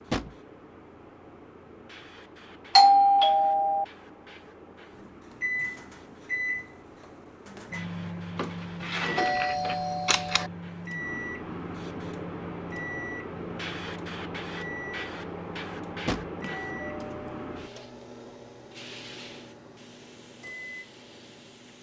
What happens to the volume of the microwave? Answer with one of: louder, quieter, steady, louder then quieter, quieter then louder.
quieter.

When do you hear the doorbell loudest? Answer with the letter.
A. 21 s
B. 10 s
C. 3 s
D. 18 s
C.